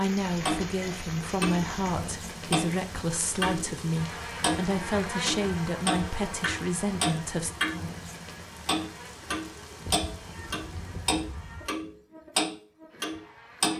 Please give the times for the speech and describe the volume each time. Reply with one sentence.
The speech can be heard from 0.0 to 7.5 s, at a steady volume.